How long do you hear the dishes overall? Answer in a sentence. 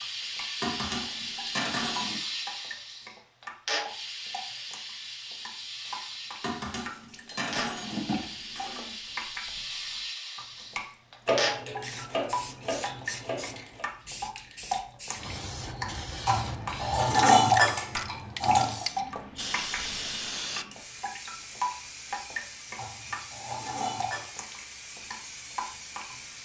You can hear the dishes for 11 seconds altogether.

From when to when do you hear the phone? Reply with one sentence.
You can't hear the phone here.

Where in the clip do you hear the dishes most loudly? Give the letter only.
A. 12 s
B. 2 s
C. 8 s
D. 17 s
D.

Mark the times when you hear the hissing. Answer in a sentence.
You can hear the hissing from 0.0 to 26.4 s.